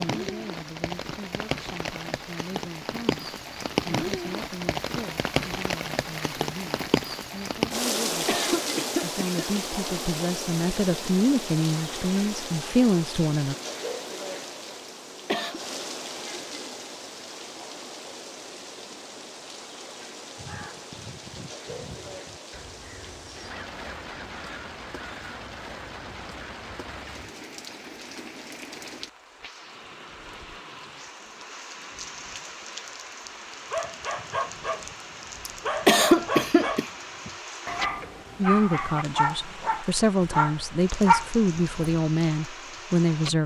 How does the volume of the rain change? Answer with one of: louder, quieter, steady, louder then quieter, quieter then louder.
quieter.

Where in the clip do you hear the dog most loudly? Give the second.
41 s.